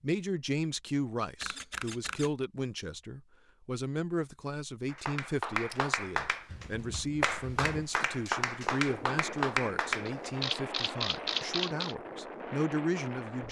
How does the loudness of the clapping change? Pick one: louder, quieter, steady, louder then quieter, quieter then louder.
quieter then louder.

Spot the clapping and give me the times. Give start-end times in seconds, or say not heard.
4.8-10.3.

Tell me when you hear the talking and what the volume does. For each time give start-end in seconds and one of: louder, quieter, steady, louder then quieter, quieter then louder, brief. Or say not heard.
0.0-13.4 steady.